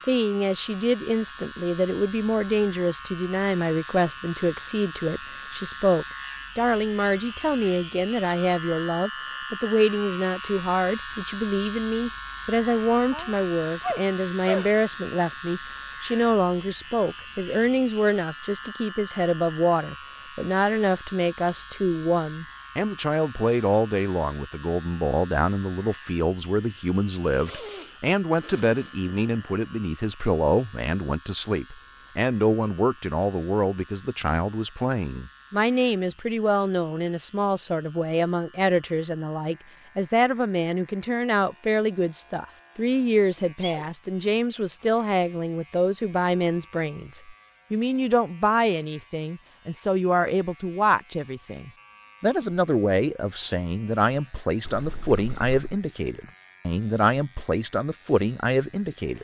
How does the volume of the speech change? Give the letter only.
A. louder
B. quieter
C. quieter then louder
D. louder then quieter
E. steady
E.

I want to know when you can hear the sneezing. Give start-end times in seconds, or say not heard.
13.1-14.7, 27.4-29.1, 43.4-43.9.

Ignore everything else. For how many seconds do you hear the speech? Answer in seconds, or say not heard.
59 s.